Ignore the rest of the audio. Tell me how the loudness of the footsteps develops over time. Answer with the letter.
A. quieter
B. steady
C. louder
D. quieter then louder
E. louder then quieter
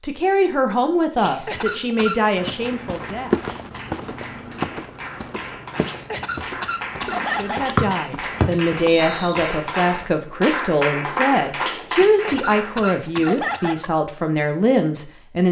A.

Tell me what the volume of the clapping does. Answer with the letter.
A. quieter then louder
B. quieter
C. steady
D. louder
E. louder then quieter
D.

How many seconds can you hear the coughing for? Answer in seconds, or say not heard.
5 s.